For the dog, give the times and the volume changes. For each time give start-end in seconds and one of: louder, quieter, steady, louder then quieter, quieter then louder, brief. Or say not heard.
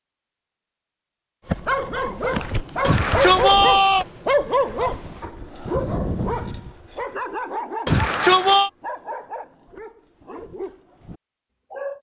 1.4-11.9 quieter.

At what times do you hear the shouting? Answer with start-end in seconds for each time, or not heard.
2.8-4.0, 7.8-8.7.